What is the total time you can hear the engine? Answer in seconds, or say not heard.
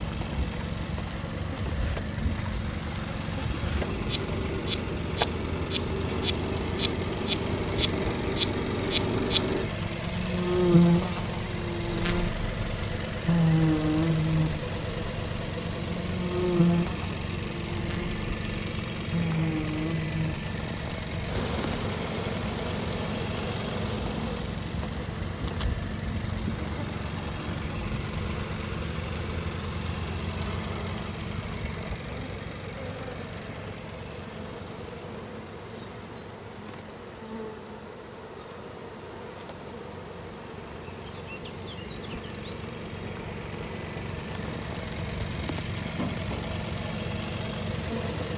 48 s.